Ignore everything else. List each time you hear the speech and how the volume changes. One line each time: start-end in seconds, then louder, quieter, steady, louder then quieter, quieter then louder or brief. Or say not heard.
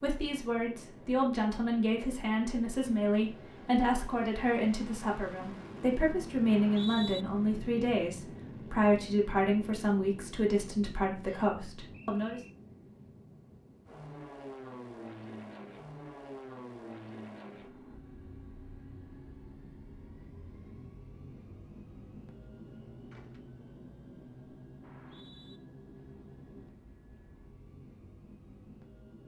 0.0-12.4 steady.